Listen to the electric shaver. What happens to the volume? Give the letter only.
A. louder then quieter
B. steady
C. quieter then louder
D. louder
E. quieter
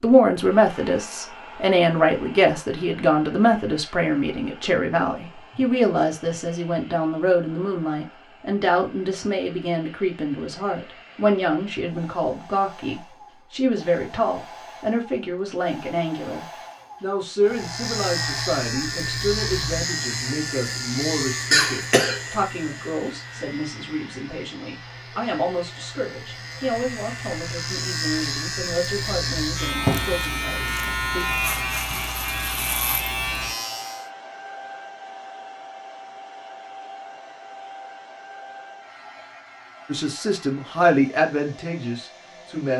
C.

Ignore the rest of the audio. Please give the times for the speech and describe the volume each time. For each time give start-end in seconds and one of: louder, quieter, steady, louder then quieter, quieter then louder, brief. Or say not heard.
0.0-31.4 quieter
39.9-42.7 brief.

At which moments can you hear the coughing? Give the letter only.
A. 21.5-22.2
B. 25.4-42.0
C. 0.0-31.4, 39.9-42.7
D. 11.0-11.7
A.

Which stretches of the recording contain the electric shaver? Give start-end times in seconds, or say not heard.
17.4-34.1.